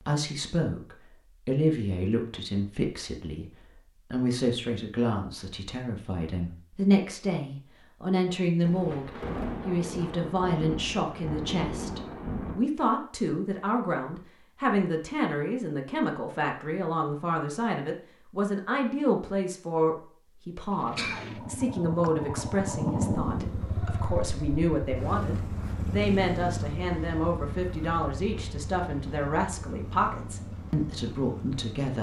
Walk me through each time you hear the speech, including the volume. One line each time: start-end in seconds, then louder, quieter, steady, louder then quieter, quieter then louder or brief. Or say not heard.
0.1-31.9 steady.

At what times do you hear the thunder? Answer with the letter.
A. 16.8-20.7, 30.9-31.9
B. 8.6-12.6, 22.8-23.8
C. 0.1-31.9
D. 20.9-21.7
B.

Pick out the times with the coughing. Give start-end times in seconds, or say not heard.
20.9-21.7.